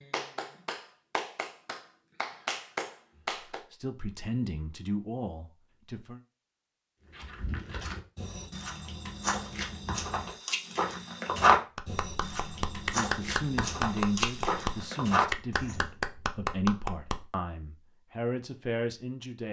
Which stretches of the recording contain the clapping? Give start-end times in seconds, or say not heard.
0.0-3.6, 11.8-17.3.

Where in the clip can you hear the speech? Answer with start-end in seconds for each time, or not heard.
3.7-6.2, 12.9-19.4.